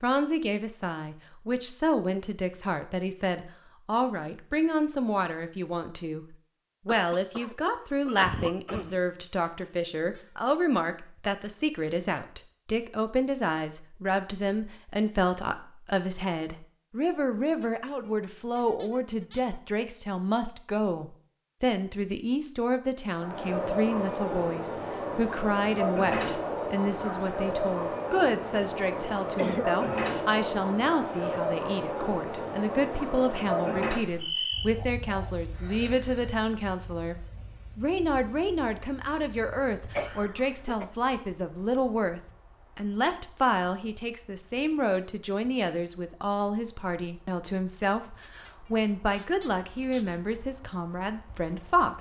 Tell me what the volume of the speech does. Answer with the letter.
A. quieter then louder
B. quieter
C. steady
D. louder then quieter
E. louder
C.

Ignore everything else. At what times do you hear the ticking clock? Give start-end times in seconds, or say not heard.
not heard.